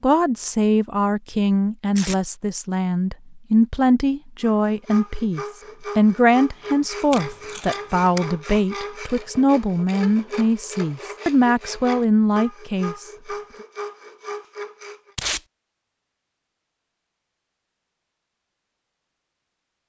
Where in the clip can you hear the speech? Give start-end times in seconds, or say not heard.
0.0-13.1.